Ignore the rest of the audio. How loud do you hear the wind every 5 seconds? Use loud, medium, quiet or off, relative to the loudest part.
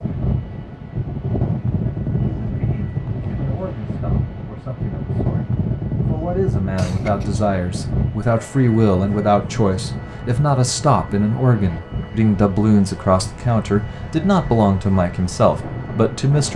loud, loud, medium, medium.